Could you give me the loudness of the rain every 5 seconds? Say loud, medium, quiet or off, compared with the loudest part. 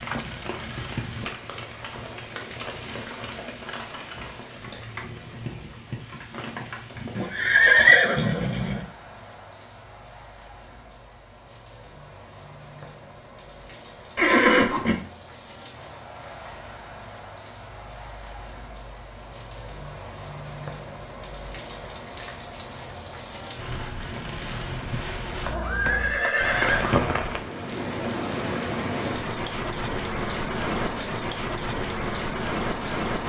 medium, medium, quiet, quiet, medium, loud, loud.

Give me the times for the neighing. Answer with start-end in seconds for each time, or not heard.
7.2-8.8, 14.2-14.9, 25.4-27.0.